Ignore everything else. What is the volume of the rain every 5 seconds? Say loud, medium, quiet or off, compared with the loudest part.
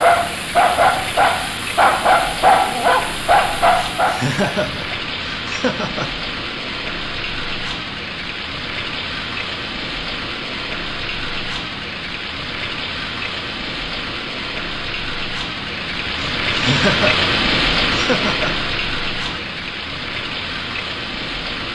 medium, medium, medium, loud, medium.